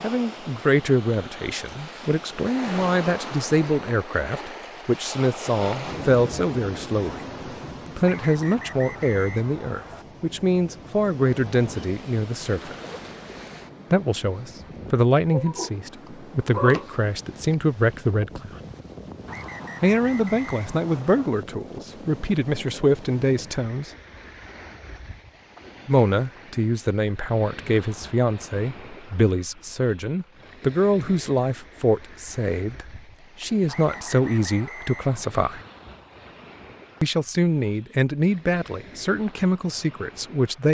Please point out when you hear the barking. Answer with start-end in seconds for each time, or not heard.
15.3-16.9.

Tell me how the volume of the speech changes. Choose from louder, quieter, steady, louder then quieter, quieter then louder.
steady.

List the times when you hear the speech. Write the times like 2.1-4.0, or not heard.
0.0-7.2, 7.8-12.8, 13.9-18.6, 19.8-23.9, 25.9-35.6, 37.0-40.6.